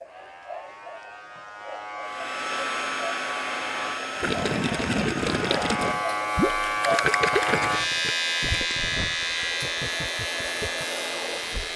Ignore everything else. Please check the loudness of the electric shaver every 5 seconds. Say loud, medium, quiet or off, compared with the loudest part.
medium, loud, medium.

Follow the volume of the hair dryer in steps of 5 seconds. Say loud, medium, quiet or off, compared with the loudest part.
loud, medium, loud.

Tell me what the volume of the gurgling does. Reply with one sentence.
The loudness of the gurgling goes down.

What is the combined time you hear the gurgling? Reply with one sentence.
The gurgling can be heard for 7 seconds in total.